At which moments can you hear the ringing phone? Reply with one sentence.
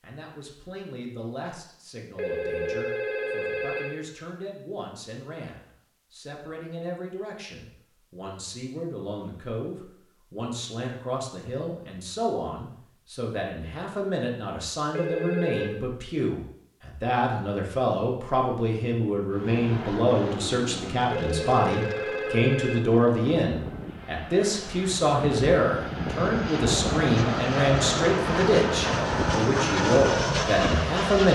The ringing phone can be heard from 2.1 to 4.0 s, from 14.9 to 15.7 s and from 21.1 to 22.9 s.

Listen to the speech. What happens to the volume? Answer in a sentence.
The loudness of the speech goes up.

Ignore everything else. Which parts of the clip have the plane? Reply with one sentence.
You can hear the plane from 19.3 to 31.3 s.